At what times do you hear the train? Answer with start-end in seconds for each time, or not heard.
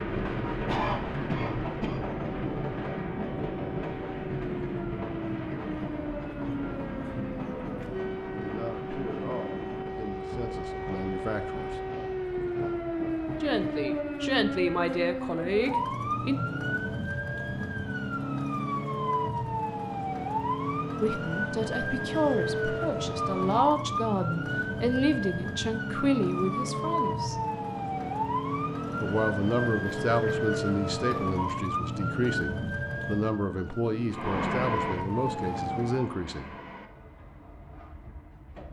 0.0-13.9, 34.1-38.6.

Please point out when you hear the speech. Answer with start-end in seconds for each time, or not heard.
8.3-11.7, 13.4-16.4, 21.0-27.4, 29.0-36.5.